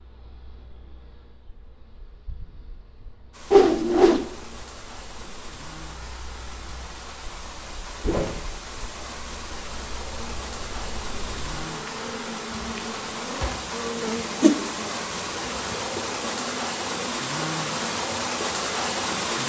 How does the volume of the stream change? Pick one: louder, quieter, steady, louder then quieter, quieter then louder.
louder.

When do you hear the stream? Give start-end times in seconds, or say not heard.
3.3-19.4.